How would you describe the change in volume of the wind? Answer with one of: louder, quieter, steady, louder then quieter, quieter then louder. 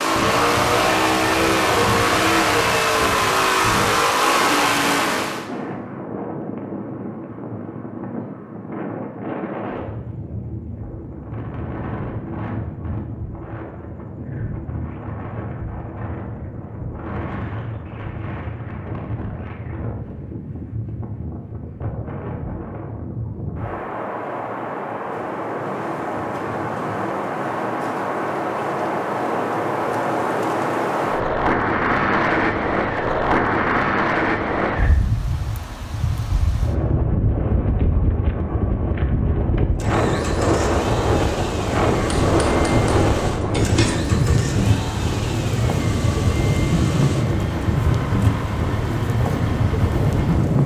louder.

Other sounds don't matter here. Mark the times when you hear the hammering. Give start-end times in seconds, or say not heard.
42.0-44.0.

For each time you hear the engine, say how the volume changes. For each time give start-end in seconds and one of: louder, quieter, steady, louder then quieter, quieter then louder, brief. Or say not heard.
0.0-5.5 steady
39.8-50.6 steady.